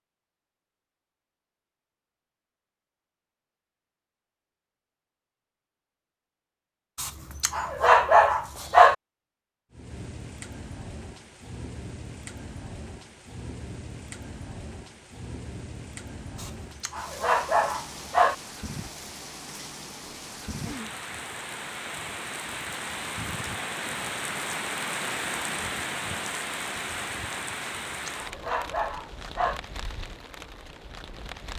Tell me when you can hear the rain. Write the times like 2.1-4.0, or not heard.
9.7-31.5.